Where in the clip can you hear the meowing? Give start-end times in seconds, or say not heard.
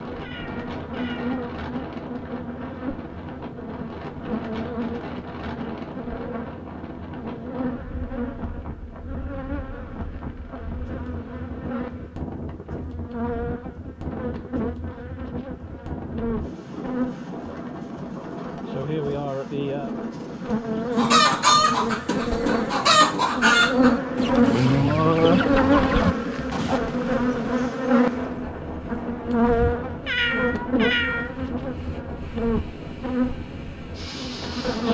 0.2-1.4, 30.1-31.4.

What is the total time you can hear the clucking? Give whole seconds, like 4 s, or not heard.
6 s.